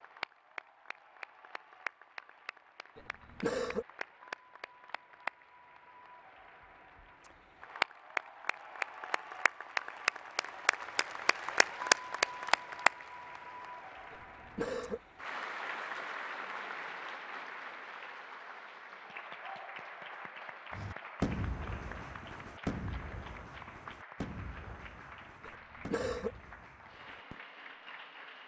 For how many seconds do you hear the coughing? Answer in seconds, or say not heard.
3 s.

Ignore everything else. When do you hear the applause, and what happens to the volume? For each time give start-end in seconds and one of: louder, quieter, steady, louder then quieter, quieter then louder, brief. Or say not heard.
0.0-28.4 louder then quieter.